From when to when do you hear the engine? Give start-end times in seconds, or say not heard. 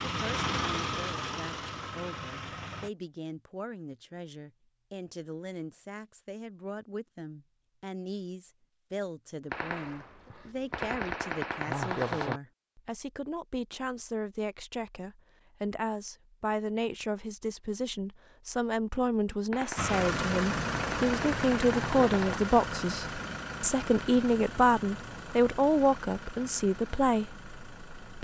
0.0-2.9, 19.8-28.1.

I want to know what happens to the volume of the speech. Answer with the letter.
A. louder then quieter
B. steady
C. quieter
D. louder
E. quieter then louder
D.